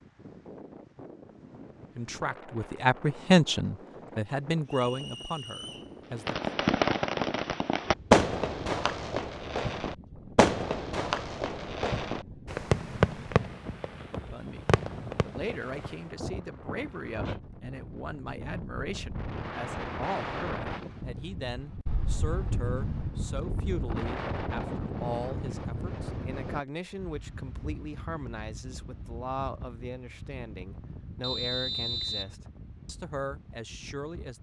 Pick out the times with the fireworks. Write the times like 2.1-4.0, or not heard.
6.2-15.9.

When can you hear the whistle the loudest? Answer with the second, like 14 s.
32 s.